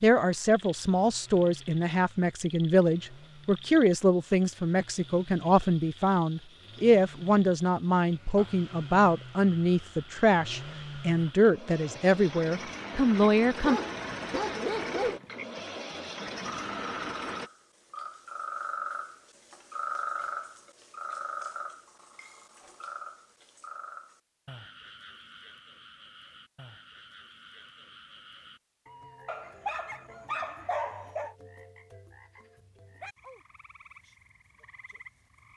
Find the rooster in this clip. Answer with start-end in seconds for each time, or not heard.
not heard.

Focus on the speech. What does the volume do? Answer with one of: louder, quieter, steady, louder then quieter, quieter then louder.
steady.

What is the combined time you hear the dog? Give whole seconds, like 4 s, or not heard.
4 s.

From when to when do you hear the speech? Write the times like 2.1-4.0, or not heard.
0.0-13.8.